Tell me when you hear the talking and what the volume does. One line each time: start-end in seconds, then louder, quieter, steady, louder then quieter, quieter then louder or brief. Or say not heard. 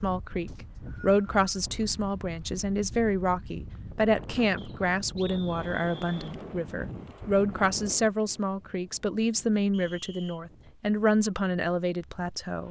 0.0-12.6 steady.